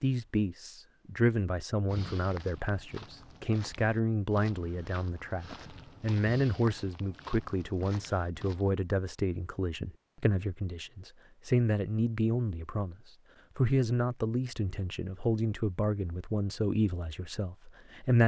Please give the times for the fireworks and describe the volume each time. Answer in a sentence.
You can't hear the fireworks here.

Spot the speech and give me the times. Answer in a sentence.
You can hear the speech from 0.0 to 18.2 s.